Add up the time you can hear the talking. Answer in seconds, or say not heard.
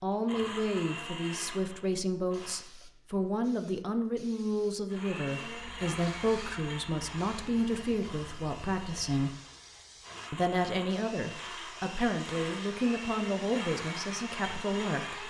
14 s.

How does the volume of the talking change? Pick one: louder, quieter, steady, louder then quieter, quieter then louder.
steady.